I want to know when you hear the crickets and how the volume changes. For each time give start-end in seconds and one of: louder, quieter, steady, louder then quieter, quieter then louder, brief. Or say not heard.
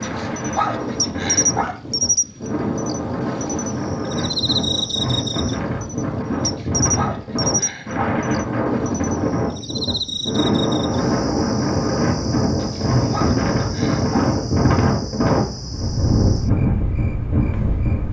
0.0-18.0 quieter.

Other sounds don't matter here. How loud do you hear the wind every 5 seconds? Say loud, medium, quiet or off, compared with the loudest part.
medium, loud, loud, loud.